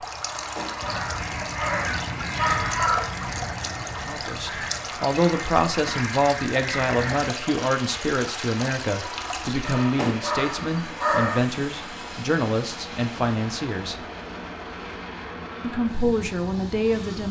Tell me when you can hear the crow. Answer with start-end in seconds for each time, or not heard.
0.8-7.3.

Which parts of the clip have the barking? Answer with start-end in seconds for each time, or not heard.
0.2-3.1, 9.6-11.4.